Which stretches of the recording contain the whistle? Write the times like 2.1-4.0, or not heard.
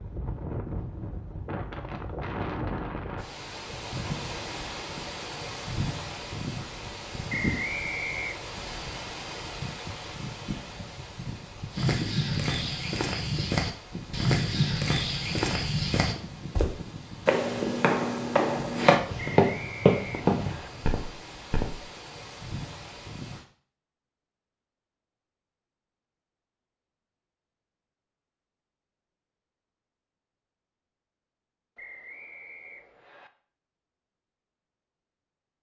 7.2-8.4, 19.4-20.7, 31.8-33.3.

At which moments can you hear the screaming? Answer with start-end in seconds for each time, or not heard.
not heard.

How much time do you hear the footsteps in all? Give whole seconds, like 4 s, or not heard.
10 s.